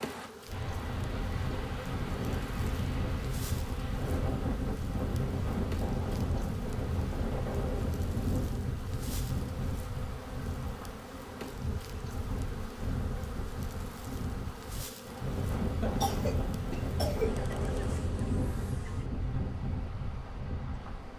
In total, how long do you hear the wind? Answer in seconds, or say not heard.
21 s.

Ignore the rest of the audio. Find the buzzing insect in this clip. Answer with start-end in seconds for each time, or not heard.
0.0-21.1.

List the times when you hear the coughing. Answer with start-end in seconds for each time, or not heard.
15.8-17.4.